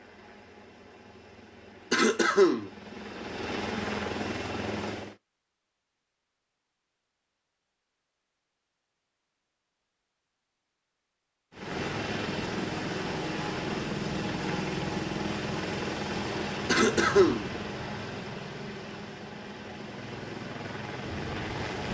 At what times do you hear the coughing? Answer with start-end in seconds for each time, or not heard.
1.9-2.7, 16.6-17.5.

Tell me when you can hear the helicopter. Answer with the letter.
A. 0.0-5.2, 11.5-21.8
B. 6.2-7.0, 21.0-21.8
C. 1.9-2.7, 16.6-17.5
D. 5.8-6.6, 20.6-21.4
A.